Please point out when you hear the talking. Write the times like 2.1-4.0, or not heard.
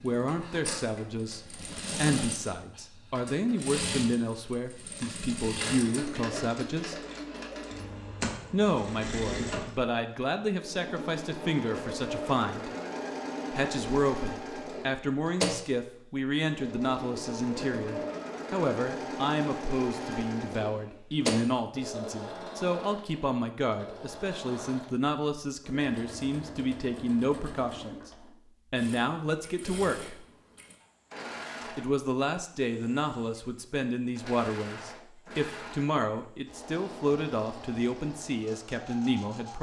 0.0-7.0, 8.5-12.7, 13.5-28.1, 28.7-30.2, 31.6-39.5.